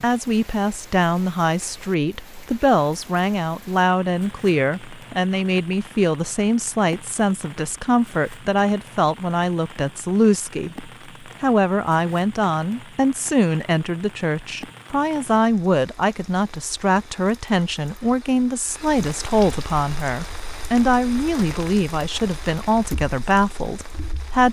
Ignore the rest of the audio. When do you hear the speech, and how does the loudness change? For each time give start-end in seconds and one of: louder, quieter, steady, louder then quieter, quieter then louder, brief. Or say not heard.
0.0-24.4 steady.